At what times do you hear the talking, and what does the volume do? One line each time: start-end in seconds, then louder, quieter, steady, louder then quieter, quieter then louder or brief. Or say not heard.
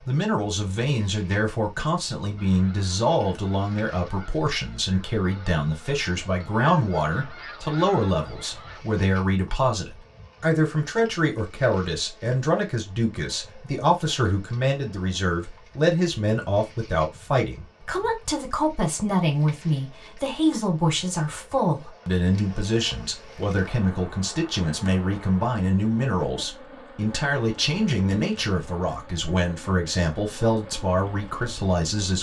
0.1-32.1 steady.